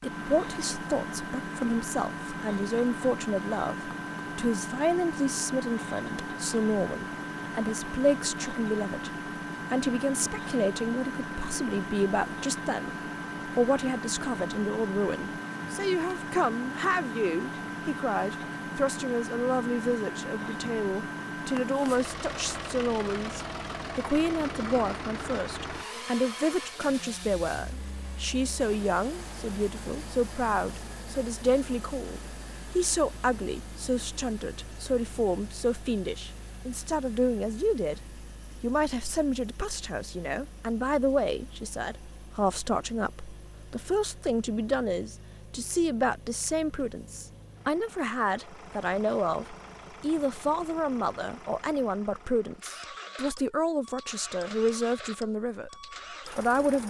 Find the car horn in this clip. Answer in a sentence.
The car horn can't be heard in this clip.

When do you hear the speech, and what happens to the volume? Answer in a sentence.
The speech can be heard from 0.0 to 38.0 s, at a steady volume; and from 38.6 to 56.8 s, at a steady volume.